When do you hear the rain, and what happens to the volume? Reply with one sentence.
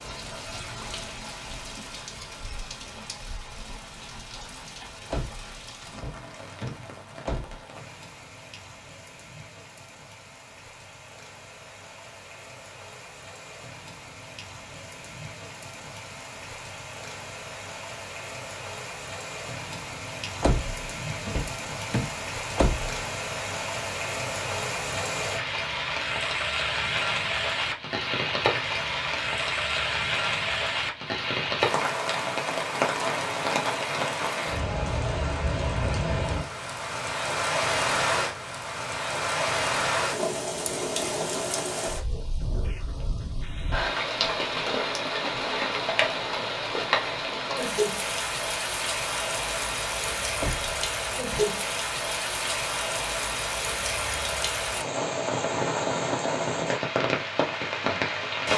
The rain can be heard from 0.0 to 58.5 s, getting louder.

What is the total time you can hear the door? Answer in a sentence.
The door can be heard for 6 seconds in total.